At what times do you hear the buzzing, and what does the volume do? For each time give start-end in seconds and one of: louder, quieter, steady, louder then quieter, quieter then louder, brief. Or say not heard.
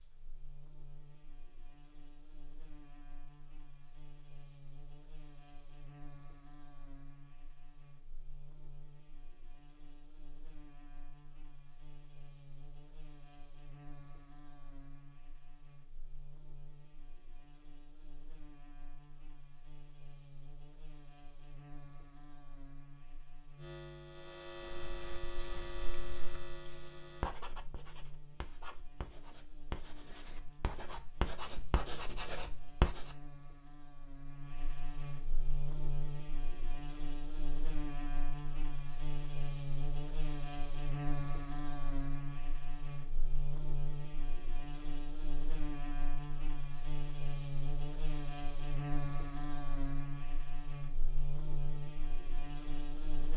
0.0-53.3 louder.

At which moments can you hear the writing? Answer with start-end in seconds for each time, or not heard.
24.6-33.2.